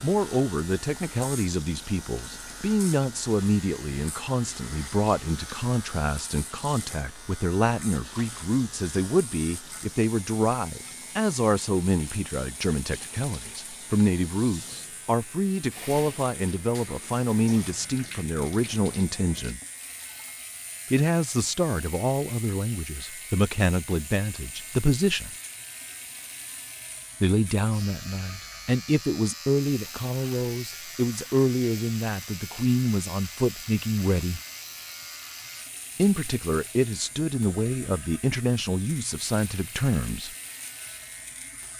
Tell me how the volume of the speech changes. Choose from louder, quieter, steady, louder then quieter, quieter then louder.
steady.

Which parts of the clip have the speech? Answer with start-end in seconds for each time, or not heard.
0.0-19.6, 20.9-25.3, 27.2-34.4, 36.0-40.3.